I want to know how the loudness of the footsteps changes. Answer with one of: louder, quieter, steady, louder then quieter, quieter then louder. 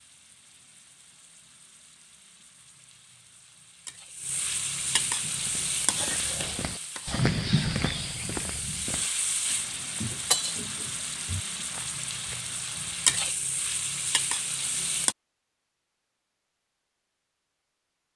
louder then quieter.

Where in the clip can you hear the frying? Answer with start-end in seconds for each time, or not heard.
0.0-15.2.